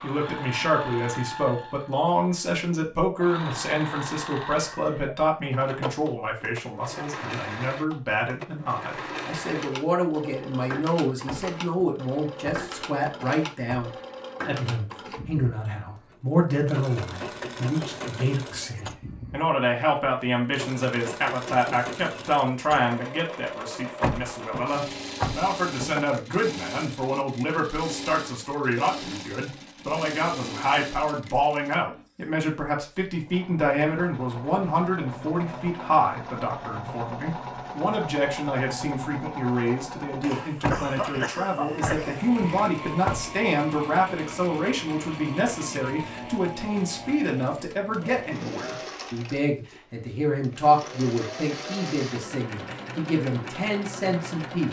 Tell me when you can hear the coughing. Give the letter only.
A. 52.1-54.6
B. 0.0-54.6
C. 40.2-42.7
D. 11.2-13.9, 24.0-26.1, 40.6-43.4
C.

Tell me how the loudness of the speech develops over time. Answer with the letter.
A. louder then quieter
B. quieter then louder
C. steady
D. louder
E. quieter
C.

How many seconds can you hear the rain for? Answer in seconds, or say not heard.
not heard.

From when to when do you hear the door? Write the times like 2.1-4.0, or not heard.
11.2-13.9, 24.0-26.1, 40.6-43.4.